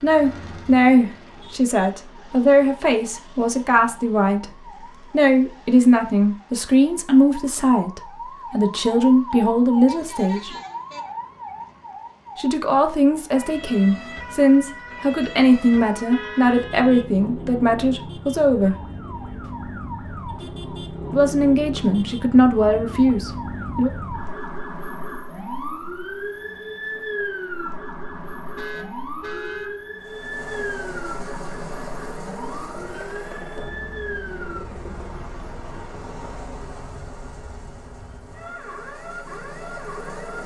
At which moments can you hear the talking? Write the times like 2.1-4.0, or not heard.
0.0-10.6, 12.3-18.8, 21.1-23.9.